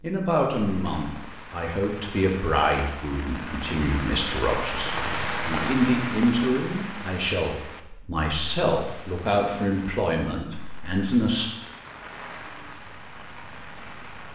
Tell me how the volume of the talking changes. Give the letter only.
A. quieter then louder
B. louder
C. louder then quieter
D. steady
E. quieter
D.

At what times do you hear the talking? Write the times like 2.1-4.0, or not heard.
0.0-11.4.